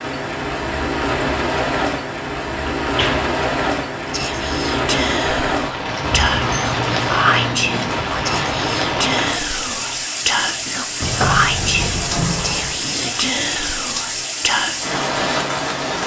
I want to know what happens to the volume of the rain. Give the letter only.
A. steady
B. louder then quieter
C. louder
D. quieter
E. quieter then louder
A.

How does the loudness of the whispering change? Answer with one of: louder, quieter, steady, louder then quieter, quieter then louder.
steady.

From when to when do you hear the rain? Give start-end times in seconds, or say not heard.
0.0-16.0.